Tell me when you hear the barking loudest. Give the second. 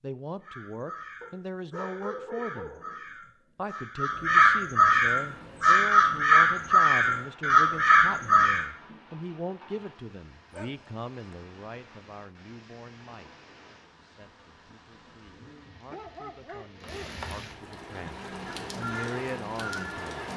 2 s.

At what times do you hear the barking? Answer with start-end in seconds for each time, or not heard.
1.2-3.3, 10.5-11.3, 15.8-17.2.